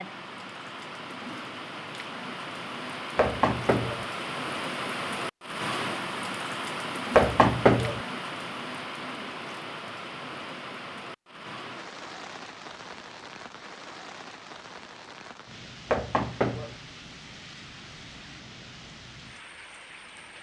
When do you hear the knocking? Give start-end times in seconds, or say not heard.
3.1-4.0, 7.2-8.0, 15.9-16.8.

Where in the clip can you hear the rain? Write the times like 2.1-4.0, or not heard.
0.0-20.3.